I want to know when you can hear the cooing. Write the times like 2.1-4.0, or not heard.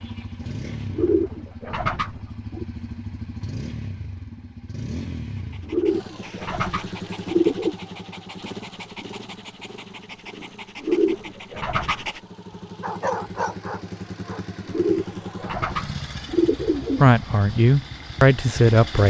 0.9-2.6, 5.7-7.8, 10.8-12.1, 14.7-17.1.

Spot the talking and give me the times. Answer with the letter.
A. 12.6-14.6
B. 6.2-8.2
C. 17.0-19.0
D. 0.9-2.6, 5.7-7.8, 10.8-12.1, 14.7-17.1
C.